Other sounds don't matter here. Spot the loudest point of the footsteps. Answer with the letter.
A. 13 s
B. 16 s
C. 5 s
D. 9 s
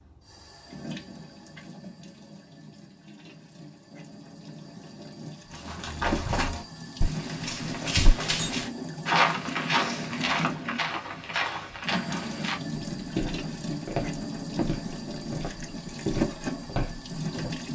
D.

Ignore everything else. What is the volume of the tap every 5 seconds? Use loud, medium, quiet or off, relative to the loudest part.
quiet, loud, loud, loud.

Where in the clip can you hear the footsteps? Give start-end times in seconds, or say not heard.
5.5-17.6.